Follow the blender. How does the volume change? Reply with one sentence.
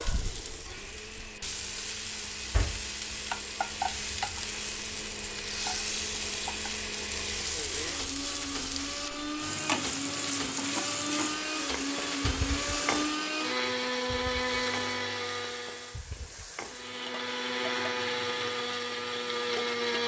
The loudness of the blender goes up.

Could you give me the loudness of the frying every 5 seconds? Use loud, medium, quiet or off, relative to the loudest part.
loud, loud, loud, medium.